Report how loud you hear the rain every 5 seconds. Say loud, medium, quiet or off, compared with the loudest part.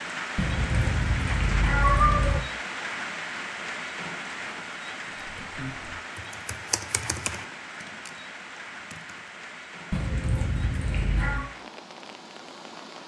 loud, medium, medium.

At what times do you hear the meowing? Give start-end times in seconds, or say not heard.
0.3-2.4, 9.9-11.4.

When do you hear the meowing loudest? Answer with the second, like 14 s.
2 s.